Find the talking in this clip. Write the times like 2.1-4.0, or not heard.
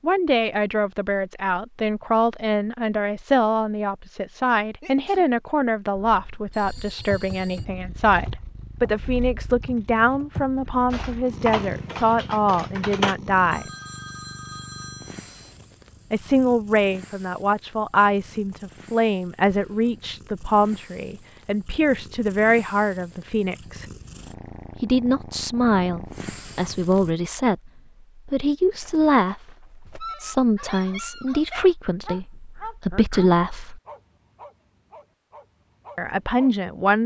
0.0-13.7, 16.1-23.9, 24.8-33.8, 36.0-37.0.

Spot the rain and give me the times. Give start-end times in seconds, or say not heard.
not heard.